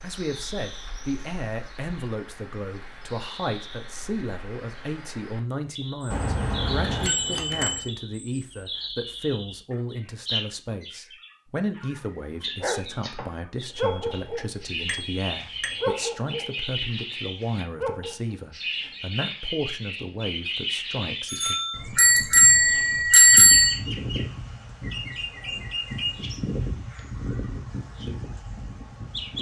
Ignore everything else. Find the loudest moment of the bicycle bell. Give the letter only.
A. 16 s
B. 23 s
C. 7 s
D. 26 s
B.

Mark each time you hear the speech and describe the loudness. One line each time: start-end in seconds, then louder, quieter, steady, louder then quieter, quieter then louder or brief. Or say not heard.
0.0-21.6 steady.